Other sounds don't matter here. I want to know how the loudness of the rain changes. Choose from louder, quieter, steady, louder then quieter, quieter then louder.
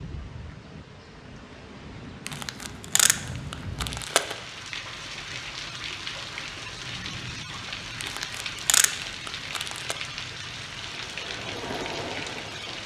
louder.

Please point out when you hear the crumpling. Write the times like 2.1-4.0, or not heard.
2.2-4.3, 8.0-9.9.